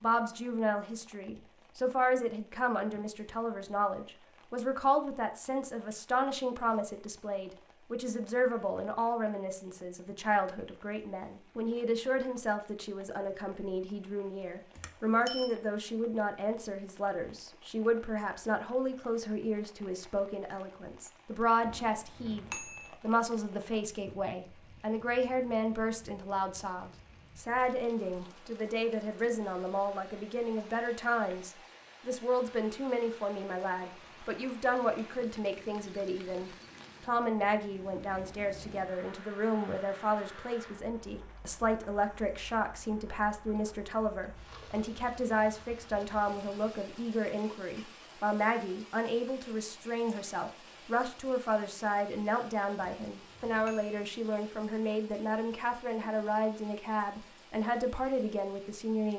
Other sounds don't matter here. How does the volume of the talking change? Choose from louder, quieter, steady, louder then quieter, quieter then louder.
steady.